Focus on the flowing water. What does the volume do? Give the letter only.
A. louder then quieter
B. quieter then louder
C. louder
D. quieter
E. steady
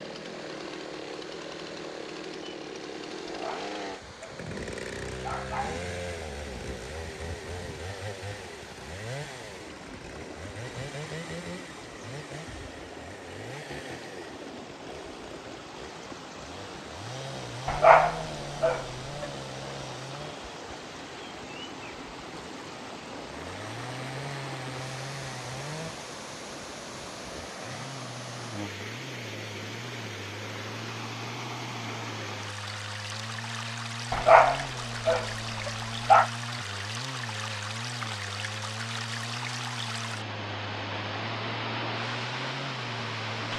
C.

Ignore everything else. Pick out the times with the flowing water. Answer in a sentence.
You can hear the flowing water from 0.0 to 43.5 s.